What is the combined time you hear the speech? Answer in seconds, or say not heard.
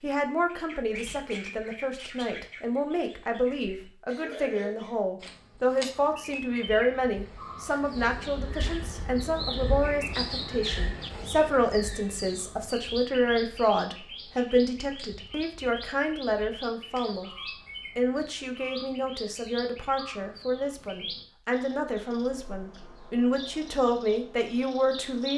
25 s.